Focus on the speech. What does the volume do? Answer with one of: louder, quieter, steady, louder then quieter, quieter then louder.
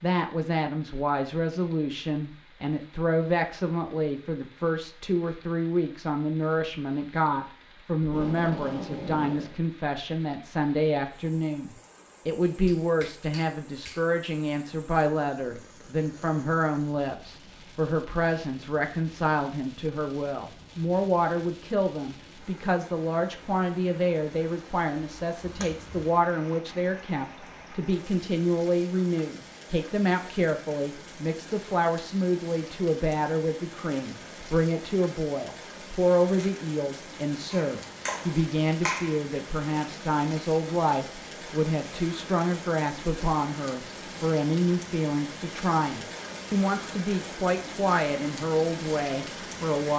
steady.